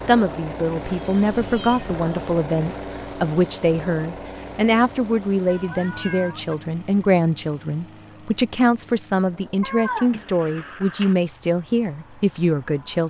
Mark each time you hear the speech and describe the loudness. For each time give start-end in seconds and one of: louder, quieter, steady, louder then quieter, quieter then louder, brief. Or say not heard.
0.0-13.0 steady.